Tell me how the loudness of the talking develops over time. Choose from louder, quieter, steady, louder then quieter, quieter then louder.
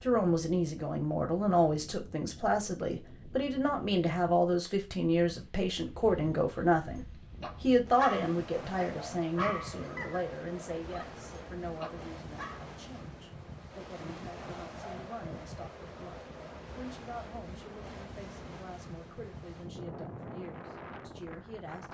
quieter.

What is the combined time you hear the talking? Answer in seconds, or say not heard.
22 s.